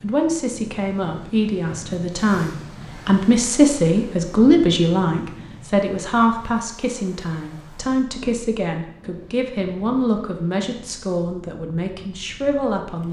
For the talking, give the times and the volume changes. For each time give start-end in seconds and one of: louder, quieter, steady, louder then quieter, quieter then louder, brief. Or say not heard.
0.0-13.0 louder then quieter.